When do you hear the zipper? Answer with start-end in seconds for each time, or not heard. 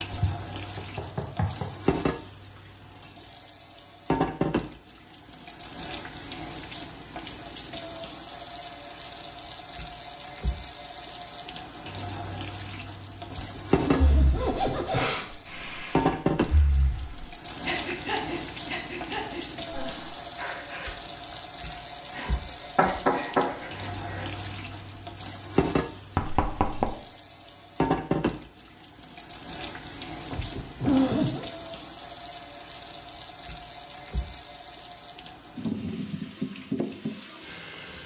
13.3-15.2, 30.3-31.4.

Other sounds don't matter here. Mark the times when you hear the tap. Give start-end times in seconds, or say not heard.
0.0-38.0.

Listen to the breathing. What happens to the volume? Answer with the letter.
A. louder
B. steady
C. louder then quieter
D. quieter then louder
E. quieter
E.